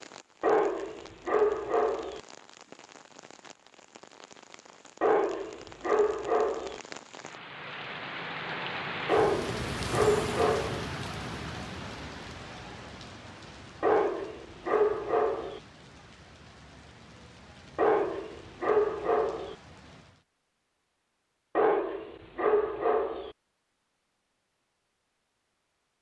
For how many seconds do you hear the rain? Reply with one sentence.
The rain can be heard for 20 seconds in total.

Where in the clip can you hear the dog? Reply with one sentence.
The dog can be heard from 0.4 to 2.2 s, from 5.0 to 6.8 s, from 9.1 to 10.8 s, from 13.8 to 15.6 s, from 17.8 to 19.6 s and from 21.6 to 23.4 s.